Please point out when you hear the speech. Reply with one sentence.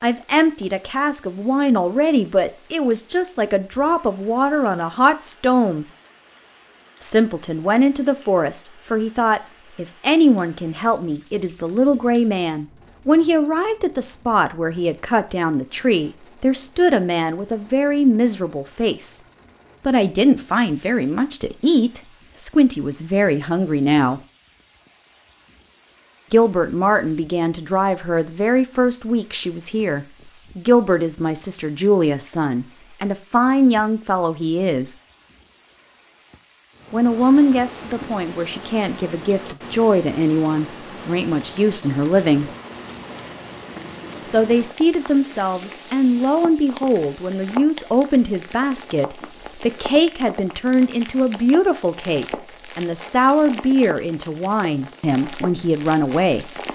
You can hear the speech from 0.0 to 5.8 s, from 7.0 to 19.2 s, from 19.9 to 24.2 s, from 26.3 to 35.0 s, from 36.9 to 42.5 s and from 44.2 to 56.5 s.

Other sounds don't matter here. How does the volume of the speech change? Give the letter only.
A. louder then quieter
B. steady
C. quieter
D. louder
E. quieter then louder
B.